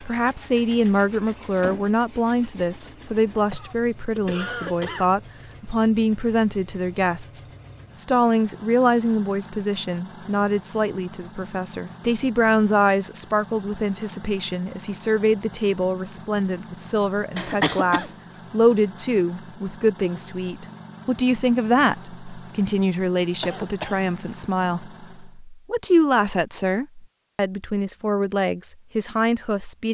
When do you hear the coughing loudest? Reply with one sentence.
The loudest moment of the coughing is at 18 seconds.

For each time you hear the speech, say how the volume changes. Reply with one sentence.
You can hear the speech from 0.0 to 29.8 s, at a steady volume.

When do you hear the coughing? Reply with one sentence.
You can hear the coughing from 3.0 to 5.1 s, from 17.4 to 18.1 s and from 23.4 to 24.0 s.